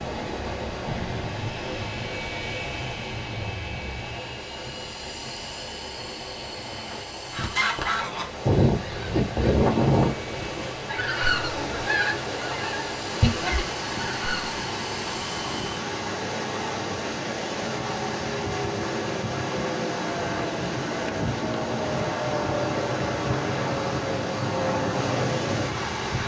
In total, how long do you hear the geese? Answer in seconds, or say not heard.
7 s.